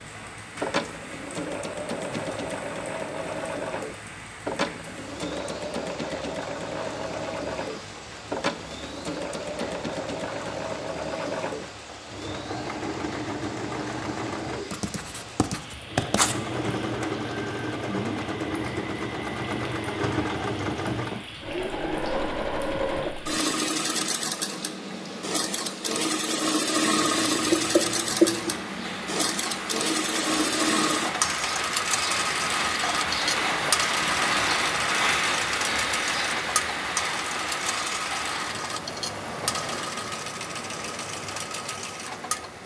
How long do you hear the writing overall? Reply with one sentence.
You can hear the writing for 3 seconds altogether.